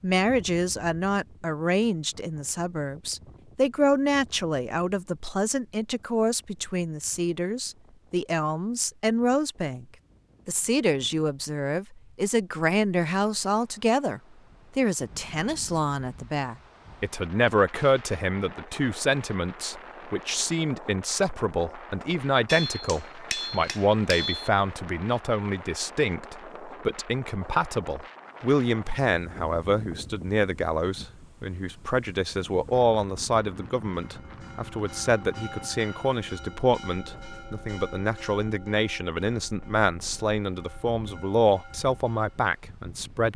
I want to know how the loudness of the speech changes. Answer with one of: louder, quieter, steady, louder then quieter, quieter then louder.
steady.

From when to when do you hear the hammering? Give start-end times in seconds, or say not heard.
22.4-24.5.